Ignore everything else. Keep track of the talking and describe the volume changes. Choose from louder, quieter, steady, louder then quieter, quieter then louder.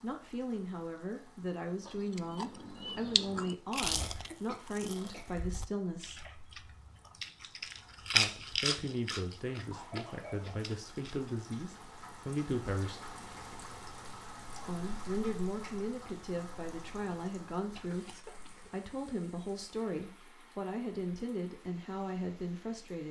steady.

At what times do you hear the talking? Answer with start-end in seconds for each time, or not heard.
0.0-6.3, 8.1-13.2, 14.7-23.0.